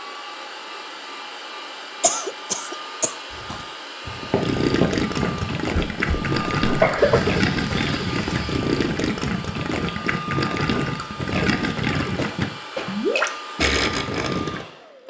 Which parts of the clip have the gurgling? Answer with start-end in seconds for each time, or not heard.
4.4-14.7.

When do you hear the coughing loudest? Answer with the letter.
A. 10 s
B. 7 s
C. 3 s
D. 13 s
B.